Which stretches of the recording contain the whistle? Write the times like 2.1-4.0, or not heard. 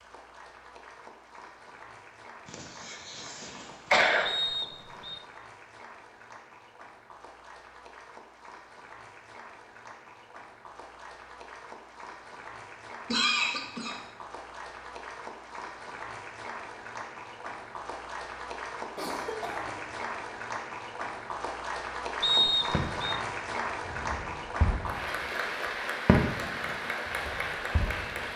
4.2-5.2, 22.2-23.2.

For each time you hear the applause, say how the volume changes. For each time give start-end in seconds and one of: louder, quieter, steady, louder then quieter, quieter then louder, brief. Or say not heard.
0.0-28.3 louder.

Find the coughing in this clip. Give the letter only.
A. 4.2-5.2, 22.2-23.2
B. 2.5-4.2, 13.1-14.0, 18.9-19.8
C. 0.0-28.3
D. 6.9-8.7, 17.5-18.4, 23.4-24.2
B.